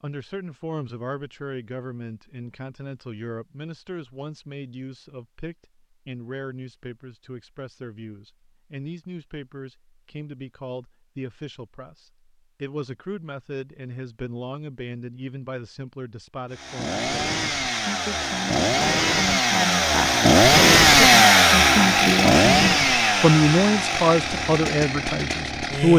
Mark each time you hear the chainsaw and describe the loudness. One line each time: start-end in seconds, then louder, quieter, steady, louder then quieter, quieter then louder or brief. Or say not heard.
16.5-25.9 louder then quieter.